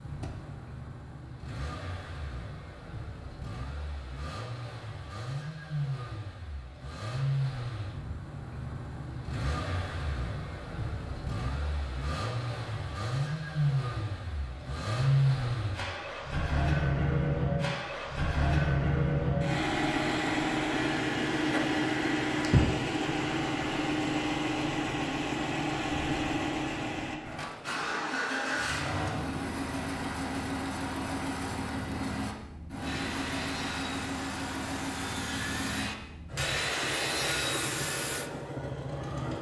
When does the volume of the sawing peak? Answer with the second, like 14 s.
37 s.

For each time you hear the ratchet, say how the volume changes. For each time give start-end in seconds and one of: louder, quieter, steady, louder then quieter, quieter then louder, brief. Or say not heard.
not heard.